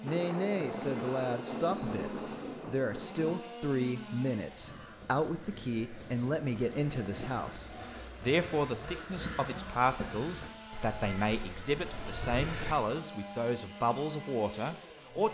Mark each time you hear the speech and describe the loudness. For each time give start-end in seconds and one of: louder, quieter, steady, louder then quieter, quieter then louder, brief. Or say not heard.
0.0-15.2 steady.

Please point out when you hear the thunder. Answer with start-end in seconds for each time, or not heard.
0.1-3.5.